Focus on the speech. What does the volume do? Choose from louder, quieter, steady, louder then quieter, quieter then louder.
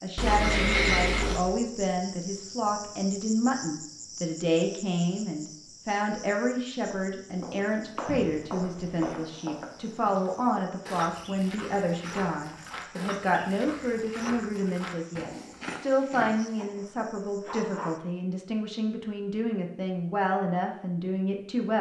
steady.